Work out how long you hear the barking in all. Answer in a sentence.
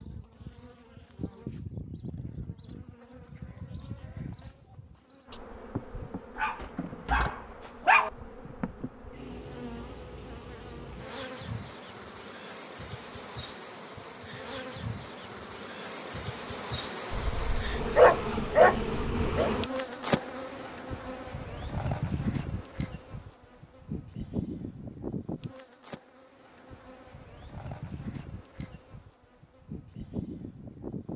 The barking can be heard for 4 seconds in total.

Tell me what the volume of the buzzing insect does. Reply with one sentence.
The volume of the buzzing insect goes up, then down.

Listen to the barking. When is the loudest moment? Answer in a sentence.
The volume of the barking peaks at 18 seconds.